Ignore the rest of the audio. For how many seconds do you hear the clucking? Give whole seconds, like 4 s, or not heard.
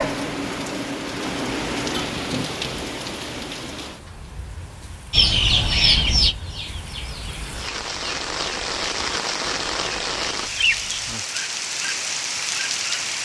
6 s.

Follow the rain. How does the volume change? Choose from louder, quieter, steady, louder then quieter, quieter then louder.
quieter then louder.